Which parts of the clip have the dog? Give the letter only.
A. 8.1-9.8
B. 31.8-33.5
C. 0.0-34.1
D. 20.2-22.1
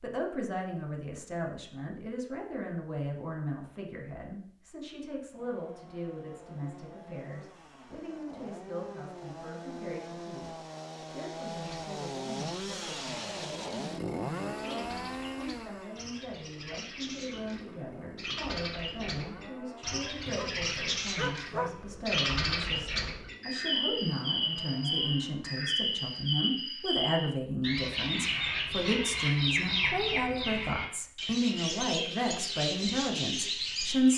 D.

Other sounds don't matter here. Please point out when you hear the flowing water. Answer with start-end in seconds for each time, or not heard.
not heard.